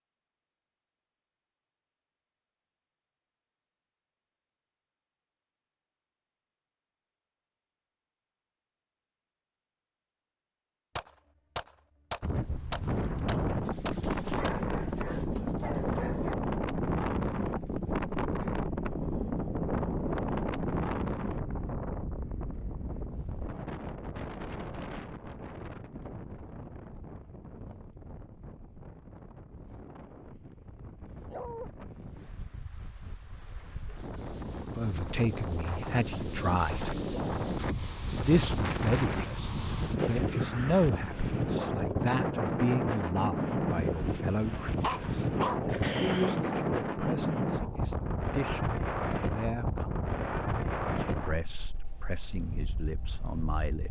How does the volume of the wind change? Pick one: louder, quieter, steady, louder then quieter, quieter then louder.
quieter then louder.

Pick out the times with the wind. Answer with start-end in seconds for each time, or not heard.
12.2-53.8.